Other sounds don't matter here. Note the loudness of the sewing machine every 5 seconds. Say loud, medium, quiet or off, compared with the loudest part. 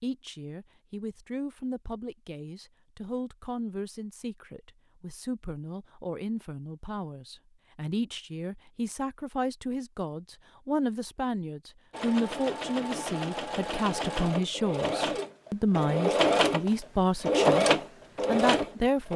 off, off, medium, loud.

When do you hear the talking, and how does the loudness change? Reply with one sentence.
The talking can be heard from 0.0 to 17.6 s, getting louder; and briefly from 18.2 to 19.1 s.